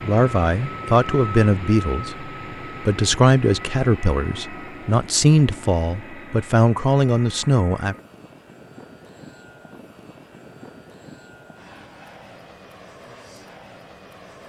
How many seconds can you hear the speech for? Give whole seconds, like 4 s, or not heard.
8 s.